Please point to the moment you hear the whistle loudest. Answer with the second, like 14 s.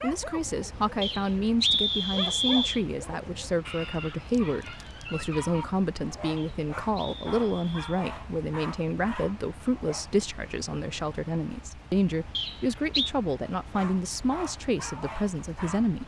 2 s.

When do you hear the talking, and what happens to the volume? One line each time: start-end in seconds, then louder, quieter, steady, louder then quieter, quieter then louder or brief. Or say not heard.
0.0-16.0 steady.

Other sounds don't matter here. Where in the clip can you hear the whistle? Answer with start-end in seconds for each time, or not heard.
1.0-2.8, 6.3-7.8, 12.3-13.1.